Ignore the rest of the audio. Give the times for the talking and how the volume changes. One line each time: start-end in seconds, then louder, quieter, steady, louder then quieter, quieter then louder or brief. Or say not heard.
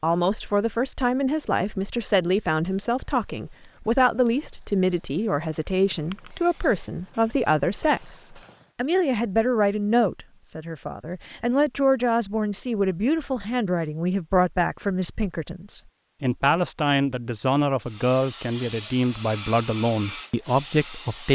0.0-21.3 steady.